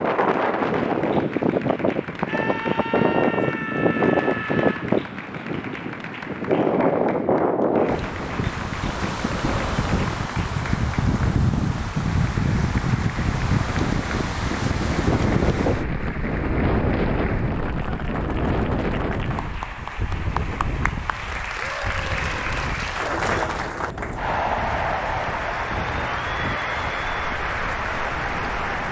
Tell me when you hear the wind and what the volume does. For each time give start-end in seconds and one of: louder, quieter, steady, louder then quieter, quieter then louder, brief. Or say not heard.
0.0-28.8 quieter.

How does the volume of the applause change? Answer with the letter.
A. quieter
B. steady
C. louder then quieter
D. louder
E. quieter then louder
D.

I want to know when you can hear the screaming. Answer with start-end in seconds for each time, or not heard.
2.2-5.0, 21.6-22.6.